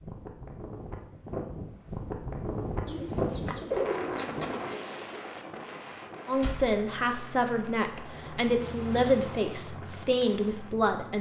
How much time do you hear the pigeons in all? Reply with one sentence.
The pigeons can be heard for 2 seconds in total.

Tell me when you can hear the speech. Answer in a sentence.
You can hear the speech from 6.2 to 11.1 s.